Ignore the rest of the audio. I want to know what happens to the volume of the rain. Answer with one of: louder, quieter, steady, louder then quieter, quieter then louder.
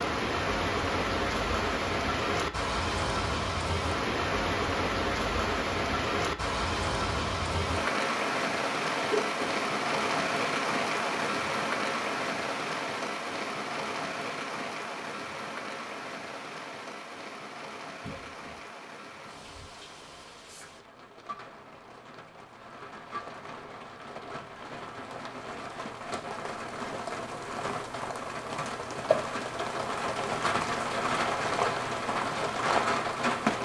quieter then louder.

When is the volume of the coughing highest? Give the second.
9 s.